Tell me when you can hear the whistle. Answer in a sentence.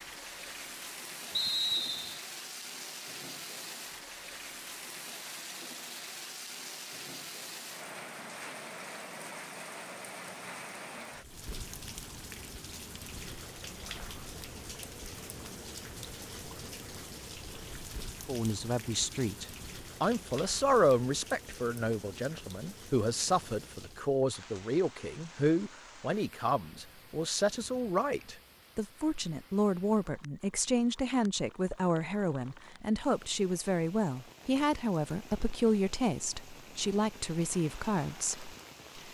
The whistle can be heard from 1.3 to 2.2 s.